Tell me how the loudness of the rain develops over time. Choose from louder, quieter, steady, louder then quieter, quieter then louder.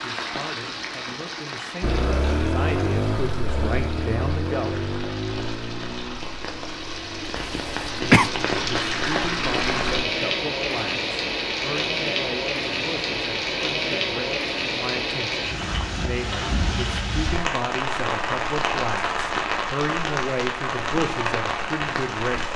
louder.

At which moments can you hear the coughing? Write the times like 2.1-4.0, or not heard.
7.3-8.3.